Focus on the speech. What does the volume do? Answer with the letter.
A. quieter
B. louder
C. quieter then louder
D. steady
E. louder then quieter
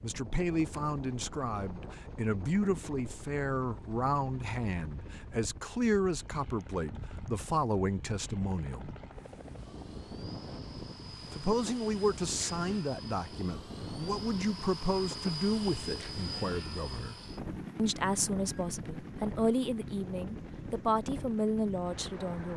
D.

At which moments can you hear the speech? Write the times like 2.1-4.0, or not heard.
0.0-8.9, 11.3-17.1, 17.8-22.5.